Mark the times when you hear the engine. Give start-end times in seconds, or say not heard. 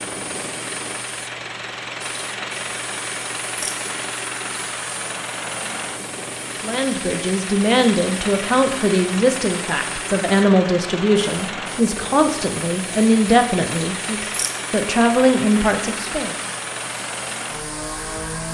0.0-18.4.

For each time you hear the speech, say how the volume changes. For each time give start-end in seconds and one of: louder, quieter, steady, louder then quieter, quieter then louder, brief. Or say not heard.
6.6-16.4 steady.